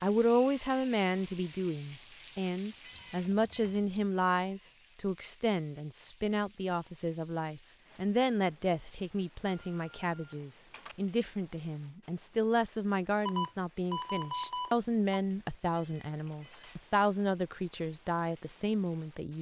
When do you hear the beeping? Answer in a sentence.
You can hear the beeping from 3.0 to 4.0 s, from 9.4 to 10.9 s and from 13.2 to 15.2 s.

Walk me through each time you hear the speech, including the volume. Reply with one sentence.
You can hear the speech from 0.0 to 19.3 s, at a steady volume.